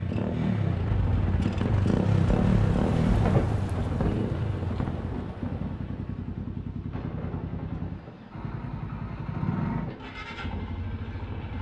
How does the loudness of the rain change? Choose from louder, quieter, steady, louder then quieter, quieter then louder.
louder then quieter.